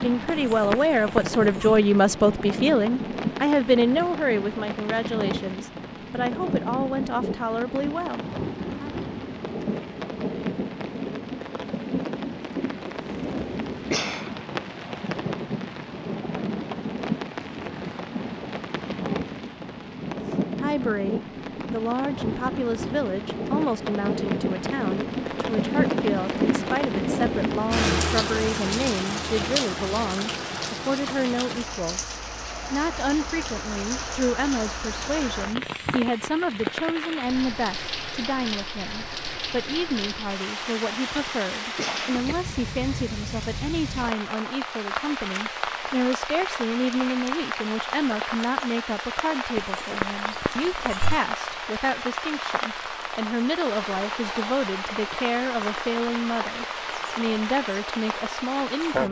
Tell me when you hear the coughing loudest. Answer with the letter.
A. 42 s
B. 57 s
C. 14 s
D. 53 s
C.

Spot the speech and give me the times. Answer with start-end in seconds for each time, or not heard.
0.0-8.9, 20.6-59.0.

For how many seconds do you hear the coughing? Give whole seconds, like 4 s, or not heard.
3 s.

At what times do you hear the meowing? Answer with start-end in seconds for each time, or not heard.
0.3-1.8, 49.5-51.2.